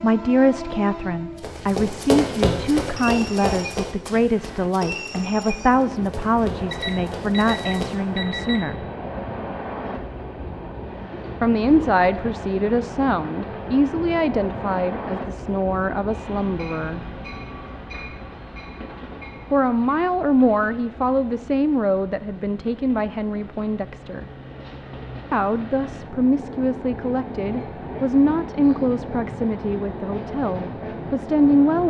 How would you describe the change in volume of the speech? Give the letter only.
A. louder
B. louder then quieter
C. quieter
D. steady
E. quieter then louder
D.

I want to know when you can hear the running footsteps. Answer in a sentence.
The running footsteps can be heard from 1.4 to 8.0 s.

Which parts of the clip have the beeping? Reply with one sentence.
The beeping can be heard from 6.7 to 8.7 s.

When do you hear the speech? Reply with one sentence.
The speech can be heard from 0.0 to 8.8 s, from 11.4 to 17.0 s, from 19.5 to 24.2 s and from 25.3 to 31.8 s.